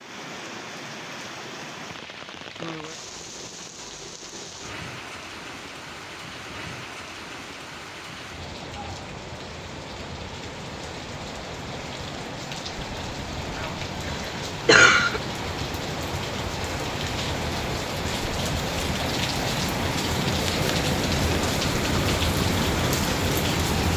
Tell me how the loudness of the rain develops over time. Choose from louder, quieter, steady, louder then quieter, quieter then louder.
louder.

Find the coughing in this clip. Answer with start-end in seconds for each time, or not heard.
13.6-15.2.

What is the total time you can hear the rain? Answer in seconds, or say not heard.
24 s.